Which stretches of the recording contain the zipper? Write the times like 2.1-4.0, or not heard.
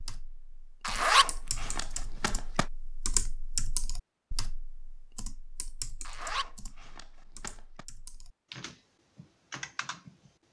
0.8-2.6, 6.0-7.8.